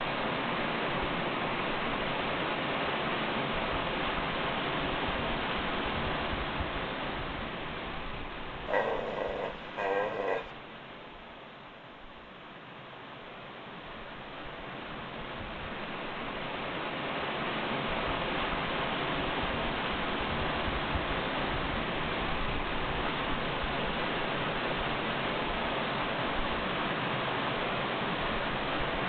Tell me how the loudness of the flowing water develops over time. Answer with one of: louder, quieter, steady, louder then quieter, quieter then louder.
quieter then louder.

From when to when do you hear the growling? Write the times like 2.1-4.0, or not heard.
8.7-10.5.